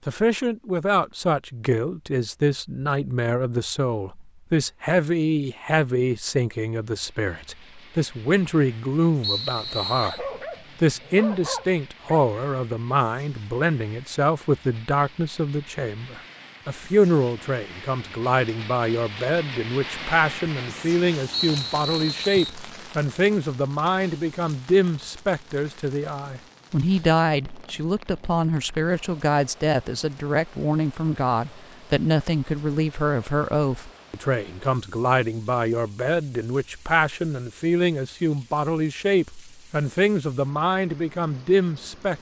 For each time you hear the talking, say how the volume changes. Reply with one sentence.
The talking can be heard from 0.1 to 42.1 s, at a steady volume.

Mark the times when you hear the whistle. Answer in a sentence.
The whistle can be heard from 9.2 to 10.2 s and from 21.3 to 22.6 s.